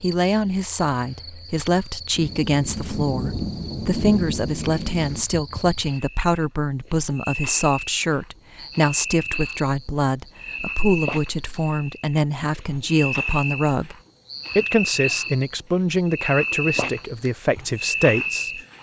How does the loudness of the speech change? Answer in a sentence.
The loudness of the speech stays about the same.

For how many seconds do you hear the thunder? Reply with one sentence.
You can hear the thunder for 3 seconds altogether.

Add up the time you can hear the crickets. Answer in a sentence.
The crickets can be heard for 19 seconds in total.